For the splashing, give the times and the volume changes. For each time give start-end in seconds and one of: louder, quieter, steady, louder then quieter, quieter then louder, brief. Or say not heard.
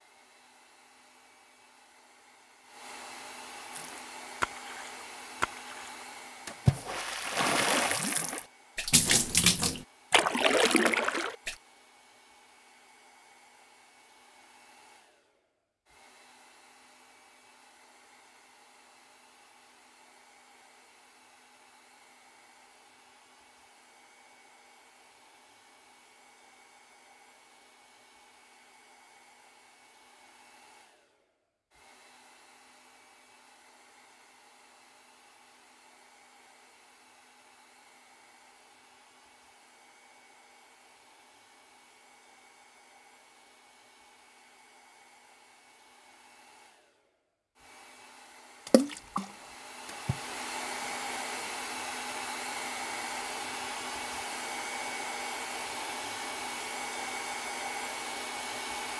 3.7-11.6 louder
48.6-51.2 brief.